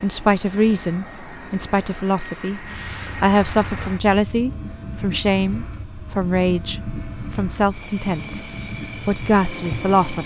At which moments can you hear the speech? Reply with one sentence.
The speech can be heard from 0.0 to 8.4 s and from 9.1 to 10.2 s.